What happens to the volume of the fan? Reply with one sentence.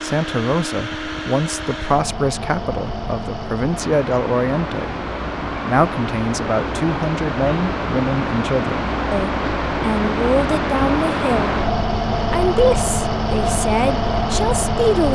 The volume of the fan goes up.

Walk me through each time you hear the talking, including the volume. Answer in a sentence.
The talking can be heard from 0.0 to 11.6 s, at a steady volume; and briefly from 12.3 to 15.0 s.